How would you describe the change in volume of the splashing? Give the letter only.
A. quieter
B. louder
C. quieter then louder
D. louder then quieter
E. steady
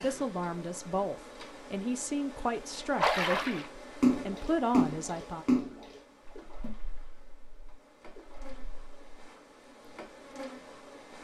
A.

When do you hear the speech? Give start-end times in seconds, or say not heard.
0.0-5.5.